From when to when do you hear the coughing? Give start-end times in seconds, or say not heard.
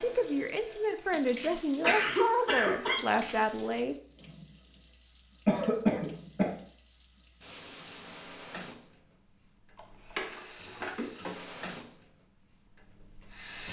1.8-3.0, 5.5-6.5, 9.8-11.1.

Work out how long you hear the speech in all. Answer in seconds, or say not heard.
4 s.